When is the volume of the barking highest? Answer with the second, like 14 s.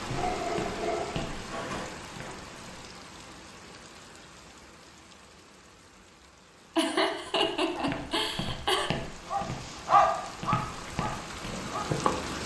10 s.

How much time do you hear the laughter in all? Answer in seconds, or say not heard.
2 s.